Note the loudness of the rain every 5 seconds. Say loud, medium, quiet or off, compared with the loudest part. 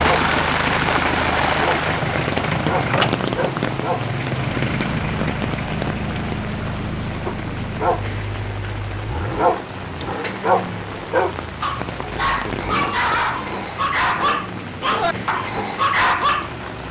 loud, medium, medium, medium.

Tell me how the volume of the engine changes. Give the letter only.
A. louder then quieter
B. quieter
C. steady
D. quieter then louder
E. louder
B.